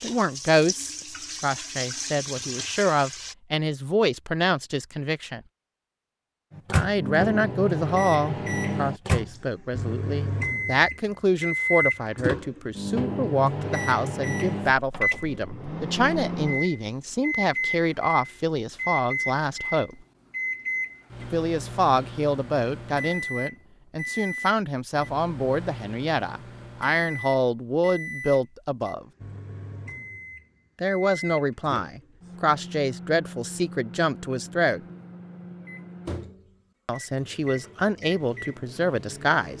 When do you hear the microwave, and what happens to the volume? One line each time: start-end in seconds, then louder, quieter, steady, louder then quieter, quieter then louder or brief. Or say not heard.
6.5-39.5 quieter.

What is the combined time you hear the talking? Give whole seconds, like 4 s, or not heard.
33 s.